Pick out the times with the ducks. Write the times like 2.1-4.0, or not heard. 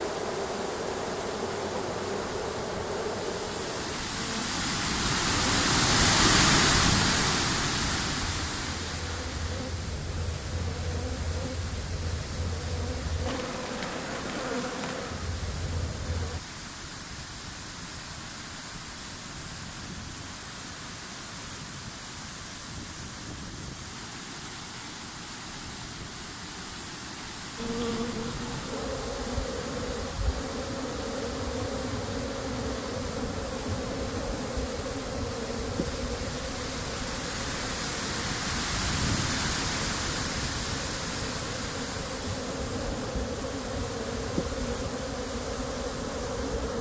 not heard.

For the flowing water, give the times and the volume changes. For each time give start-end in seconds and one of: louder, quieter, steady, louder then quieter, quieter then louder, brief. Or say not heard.
0.0-46.7 quieter then louder.